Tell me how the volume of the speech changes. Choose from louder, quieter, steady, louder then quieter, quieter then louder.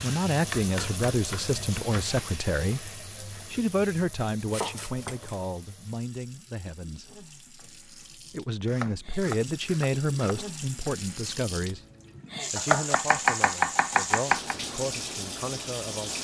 quieter.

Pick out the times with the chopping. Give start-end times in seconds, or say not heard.
0.5-2.2, 4.5-5.5, 8.7-10.4, 12.6-14.6.